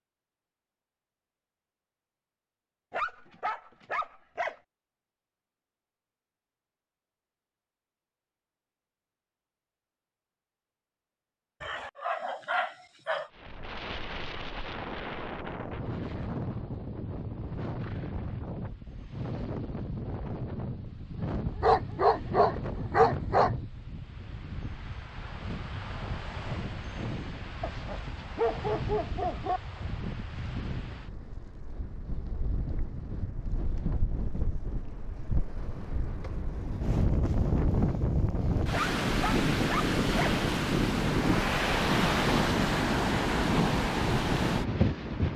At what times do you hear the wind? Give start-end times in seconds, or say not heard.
13.3-45.3.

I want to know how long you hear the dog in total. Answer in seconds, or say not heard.
9 s.